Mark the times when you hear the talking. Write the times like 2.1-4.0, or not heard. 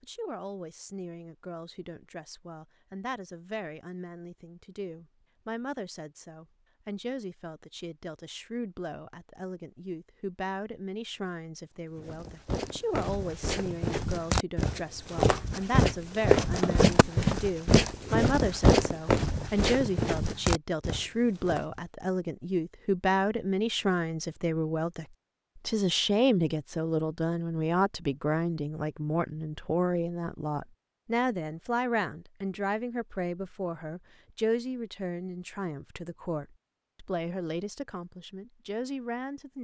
0.0-39.6.